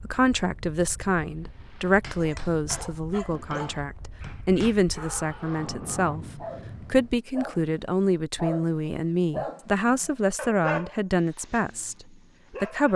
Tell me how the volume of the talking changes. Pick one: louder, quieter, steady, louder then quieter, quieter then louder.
steady.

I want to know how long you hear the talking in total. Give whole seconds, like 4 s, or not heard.
13 s.